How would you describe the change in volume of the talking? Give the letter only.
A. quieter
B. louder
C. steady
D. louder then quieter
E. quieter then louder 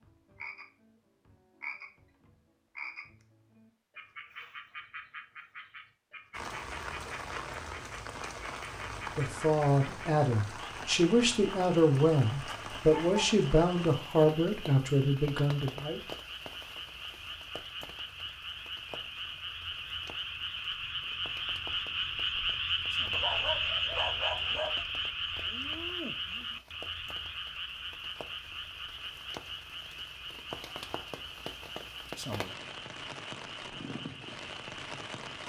C.